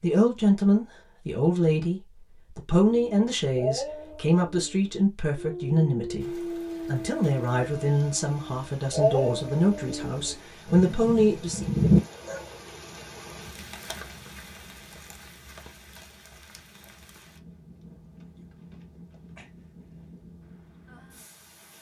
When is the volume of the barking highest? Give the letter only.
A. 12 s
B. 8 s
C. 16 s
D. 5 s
A.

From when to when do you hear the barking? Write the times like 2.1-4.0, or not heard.
2.9-12.6.